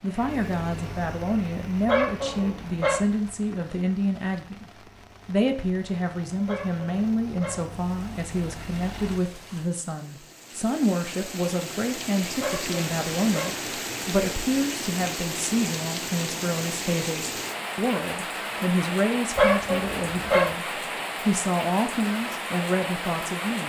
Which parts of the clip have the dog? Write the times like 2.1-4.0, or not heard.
1.9-3.0, 6.5-7.7, 12.4-13.6, 19.4-20.6.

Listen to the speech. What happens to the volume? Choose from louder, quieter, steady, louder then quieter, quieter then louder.
steady.